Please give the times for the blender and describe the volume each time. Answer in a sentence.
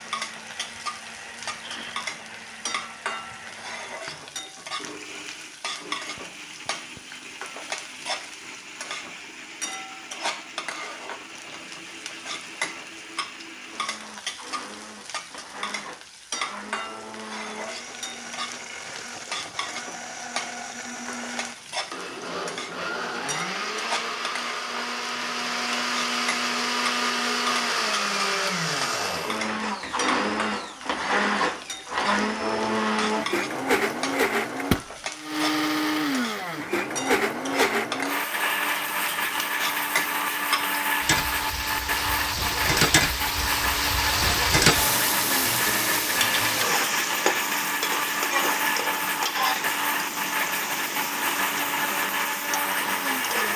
The blender can be heard from 0.0 to 53.5 s, getting louder.